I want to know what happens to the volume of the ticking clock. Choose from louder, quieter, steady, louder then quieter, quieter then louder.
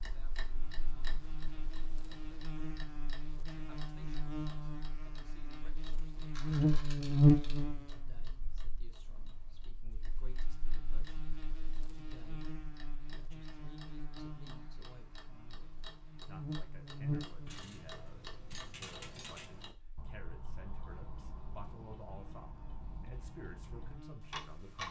quieter then louder.